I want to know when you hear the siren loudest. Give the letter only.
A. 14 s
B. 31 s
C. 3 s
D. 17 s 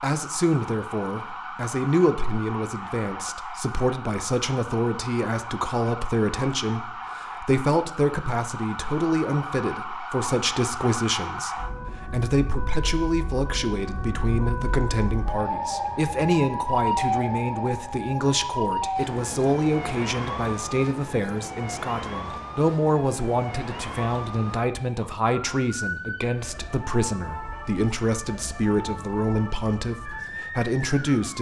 D.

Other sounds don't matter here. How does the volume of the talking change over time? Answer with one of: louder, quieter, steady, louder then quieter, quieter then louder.
steady.